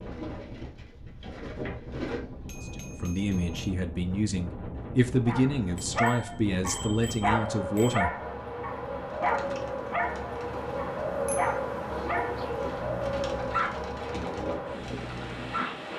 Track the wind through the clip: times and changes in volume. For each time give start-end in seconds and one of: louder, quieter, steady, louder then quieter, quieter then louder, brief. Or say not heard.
0.0-15.9 louder.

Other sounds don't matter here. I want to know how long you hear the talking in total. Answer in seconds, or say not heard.
5 s.